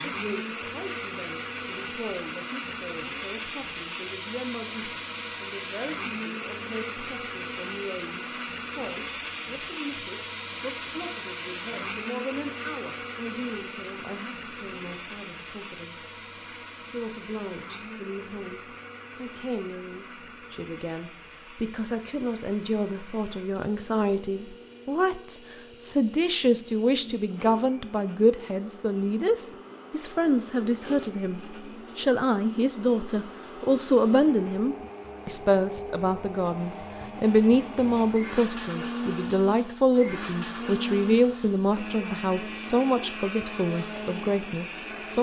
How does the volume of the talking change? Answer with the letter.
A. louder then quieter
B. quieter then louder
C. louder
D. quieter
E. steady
C.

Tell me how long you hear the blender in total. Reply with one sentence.
The blender can be heard for 45 seconds in total.